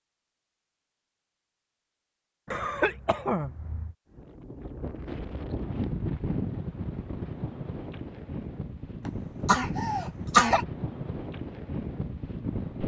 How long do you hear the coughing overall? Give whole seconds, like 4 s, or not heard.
3 s.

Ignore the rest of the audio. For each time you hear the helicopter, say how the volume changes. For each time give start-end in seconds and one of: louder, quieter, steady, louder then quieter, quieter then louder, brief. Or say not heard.
not heard.